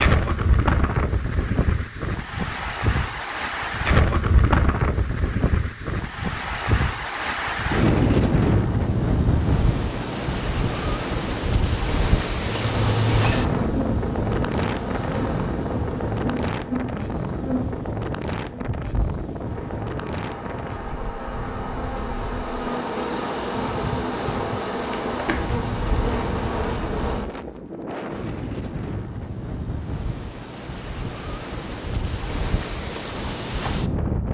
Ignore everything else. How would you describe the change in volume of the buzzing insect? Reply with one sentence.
The volume of the buzzing insect goes down, then up.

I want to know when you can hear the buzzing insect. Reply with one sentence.
You can hear the buzzing insect from 12.4 to 27.4 s.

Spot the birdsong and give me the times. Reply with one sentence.
You can't hear the birdsong here.